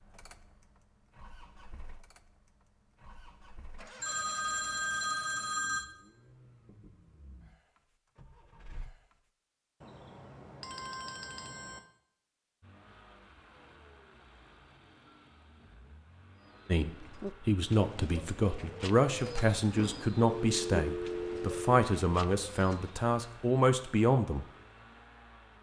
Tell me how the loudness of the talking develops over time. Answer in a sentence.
The volume of the talking stays about the same.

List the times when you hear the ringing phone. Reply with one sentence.
The ringing phone can be heard from 4.0 to 5.8 s, from 9.8 to 11.8 s and from 20.4 to 21.8 s.